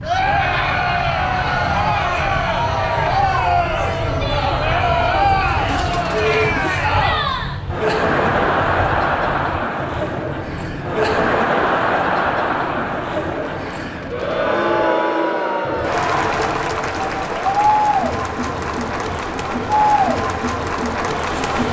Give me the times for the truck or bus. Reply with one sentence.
You can't hear the truck or bus here.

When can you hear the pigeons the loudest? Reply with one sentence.
The loudest moment of the pigeons is at 6 seconds.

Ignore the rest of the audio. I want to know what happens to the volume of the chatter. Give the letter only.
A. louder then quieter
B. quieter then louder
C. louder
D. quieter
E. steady
E.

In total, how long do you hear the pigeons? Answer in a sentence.
The pigeons can be heard for 2 seconds in total.